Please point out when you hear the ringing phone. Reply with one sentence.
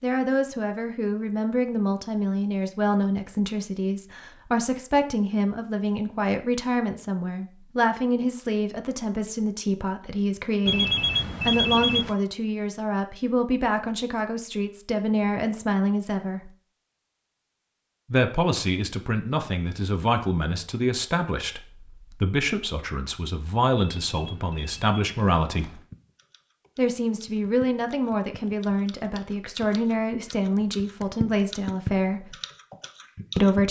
You can hear the ringing phone from 10.7 to 12.2 s and from 24.0 to 25.9 s.